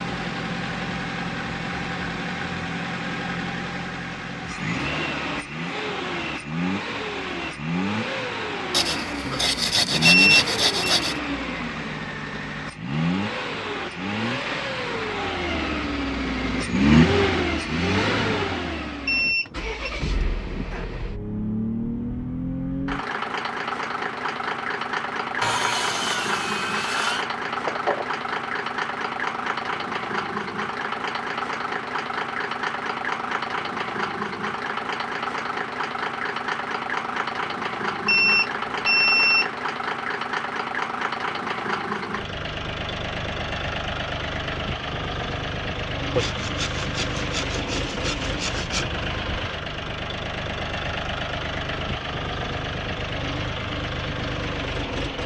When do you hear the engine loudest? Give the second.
17 s.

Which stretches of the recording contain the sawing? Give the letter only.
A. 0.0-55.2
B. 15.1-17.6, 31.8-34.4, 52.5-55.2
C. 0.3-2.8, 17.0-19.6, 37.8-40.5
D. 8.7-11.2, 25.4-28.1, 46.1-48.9
D.